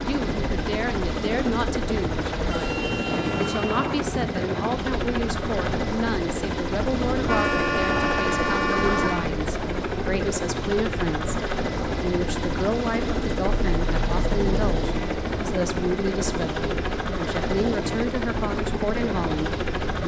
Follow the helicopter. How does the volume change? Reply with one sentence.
The volume of the helicopter stays about the same.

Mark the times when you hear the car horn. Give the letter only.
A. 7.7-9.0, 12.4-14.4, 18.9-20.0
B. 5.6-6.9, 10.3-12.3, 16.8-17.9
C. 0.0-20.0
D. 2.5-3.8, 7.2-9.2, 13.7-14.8
D.